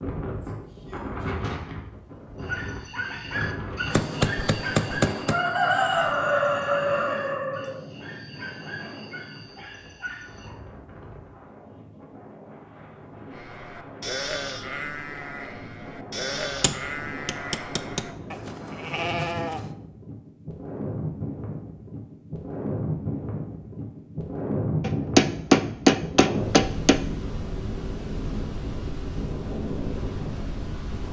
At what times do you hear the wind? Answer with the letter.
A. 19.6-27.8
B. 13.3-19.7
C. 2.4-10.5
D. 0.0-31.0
D.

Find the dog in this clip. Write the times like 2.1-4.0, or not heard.
2.4-10.5.